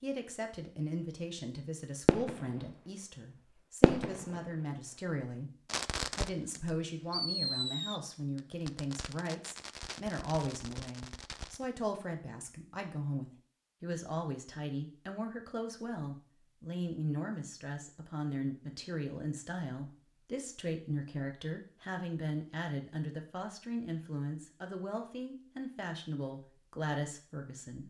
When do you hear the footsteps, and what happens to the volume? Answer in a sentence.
You can't hear the footsteps here.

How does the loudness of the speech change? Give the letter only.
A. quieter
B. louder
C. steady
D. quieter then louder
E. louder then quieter
C.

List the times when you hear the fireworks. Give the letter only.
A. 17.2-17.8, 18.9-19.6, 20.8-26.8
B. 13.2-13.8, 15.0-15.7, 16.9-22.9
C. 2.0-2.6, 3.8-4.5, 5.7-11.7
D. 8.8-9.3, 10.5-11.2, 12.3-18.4
C.